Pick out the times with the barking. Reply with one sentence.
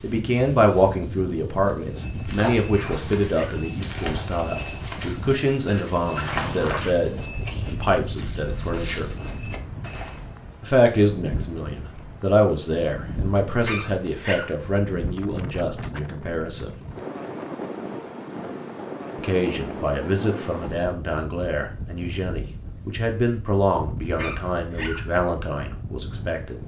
The barking can be heard from 2.7 to 3.7 s, from 13.6 to 14.6 s and from 24.1 to 25.1 s.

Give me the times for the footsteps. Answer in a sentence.
The footsteps can be heard from 1.6 to 10.3 s.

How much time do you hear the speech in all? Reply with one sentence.
The speech can be heard for 23 seconds in total.